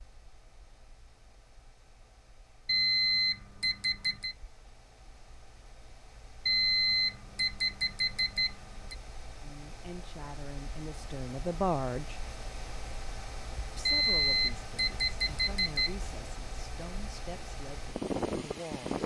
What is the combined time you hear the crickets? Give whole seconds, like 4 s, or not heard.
not heard.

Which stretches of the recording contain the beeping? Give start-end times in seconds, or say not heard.
2.6-4.3, 6.5-8.9, 13.8-15.9.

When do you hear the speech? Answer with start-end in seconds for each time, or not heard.
9.4-12.2, 13.8-19.0.